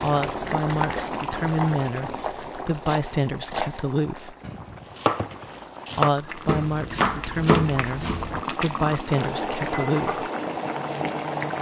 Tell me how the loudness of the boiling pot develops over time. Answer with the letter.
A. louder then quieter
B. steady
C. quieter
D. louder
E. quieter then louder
E.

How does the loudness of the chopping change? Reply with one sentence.
The volume of the chopping goes up.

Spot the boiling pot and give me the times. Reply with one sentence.
The boiling pot can be heard from 0.0 to 11.5 s.